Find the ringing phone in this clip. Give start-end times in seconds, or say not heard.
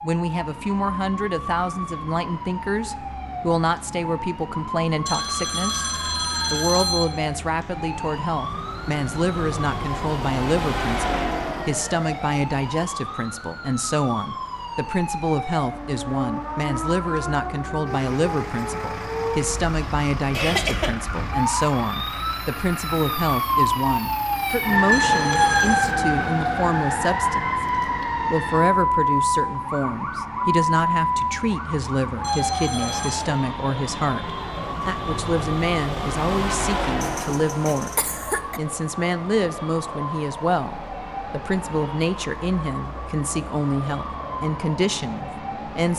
5.0-7.0, 24.9-25.9, 32.2-33.2.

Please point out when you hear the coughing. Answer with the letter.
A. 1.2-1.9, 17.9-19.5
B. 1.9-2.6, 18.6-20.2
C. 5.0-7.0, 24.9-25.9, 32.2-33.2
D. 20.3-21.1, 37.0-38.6
D.